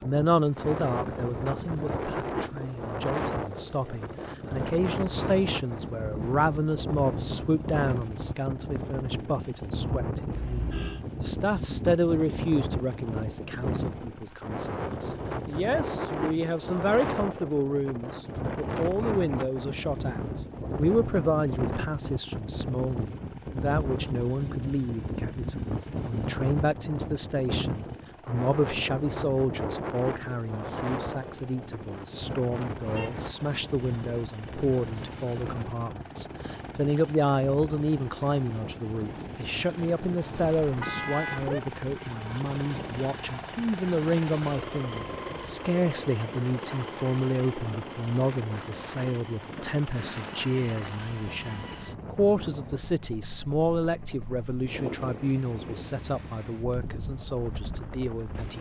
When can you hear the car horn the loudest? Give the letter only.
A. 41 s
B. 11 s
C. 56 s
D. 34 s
A.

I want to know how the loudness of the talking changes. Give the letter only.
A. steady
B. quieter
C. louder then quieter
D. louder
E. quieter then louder
A.